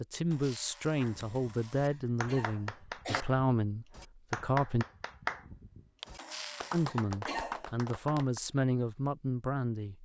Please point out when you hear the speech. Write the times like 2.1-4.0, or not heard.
0.0-4.8, 6.7-9.9.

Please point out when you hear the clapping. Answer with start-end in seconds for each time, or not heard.
1.0-8.4.